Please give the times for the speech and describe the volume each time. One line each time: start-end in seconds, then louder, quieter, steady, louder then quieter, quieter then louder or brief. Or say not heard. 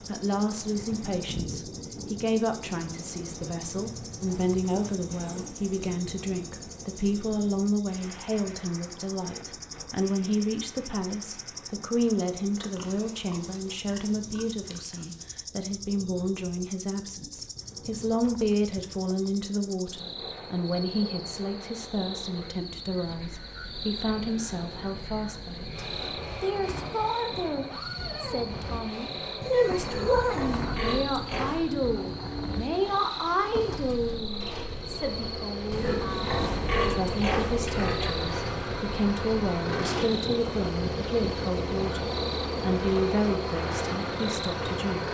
0.0-45.0 steady.